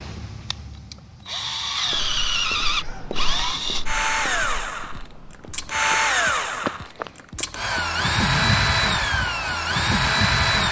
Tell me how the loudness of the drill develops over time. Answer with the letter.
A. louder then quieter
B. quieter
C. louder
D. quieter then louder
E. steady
C.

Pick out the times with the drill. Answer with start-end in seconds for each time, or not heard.
0.0-10.6.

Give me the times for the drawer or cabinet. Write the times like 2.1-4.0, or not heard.
not heard.